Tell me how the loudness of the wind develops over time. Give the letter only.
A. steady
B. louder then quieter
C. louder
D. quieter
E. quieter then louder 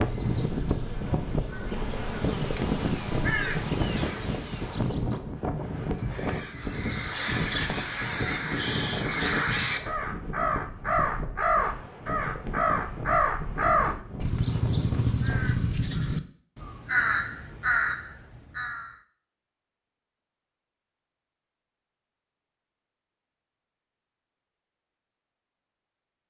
D.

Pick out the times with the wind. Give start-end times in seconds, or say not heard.
0.0-15.6.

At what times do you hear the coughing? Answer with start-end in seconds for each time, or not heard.
not heard.